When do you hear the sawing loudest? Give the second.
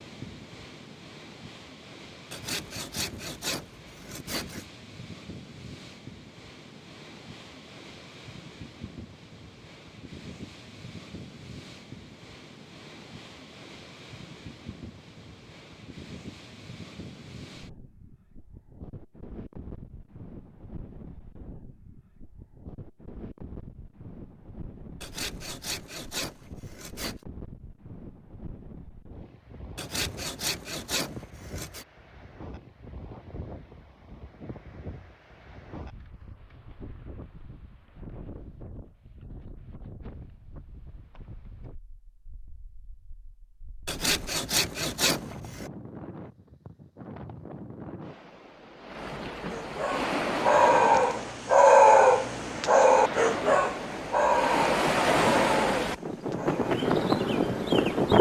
45 s.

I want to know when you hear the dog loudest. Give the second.
52 s.